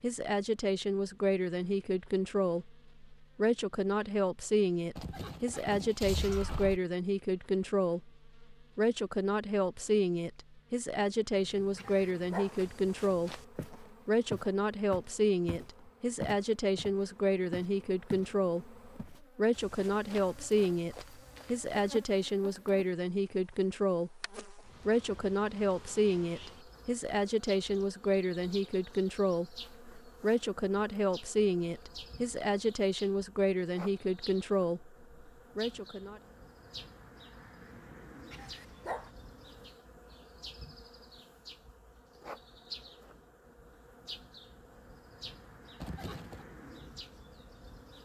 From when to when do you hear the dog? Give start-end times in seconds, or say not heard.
11.8-12.6, 38.3-39.1.